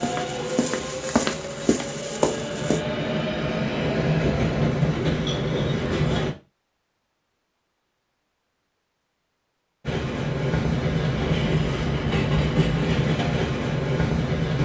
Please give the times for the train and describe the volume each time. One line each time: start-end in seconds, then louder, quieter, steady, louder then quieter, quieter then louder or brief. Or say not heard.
0.0-6.3 louder
9.8-14.6 steady.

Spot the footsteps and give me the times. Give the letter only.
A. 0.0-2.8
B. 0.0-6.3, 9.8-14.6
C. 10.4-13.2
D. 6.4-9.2
A.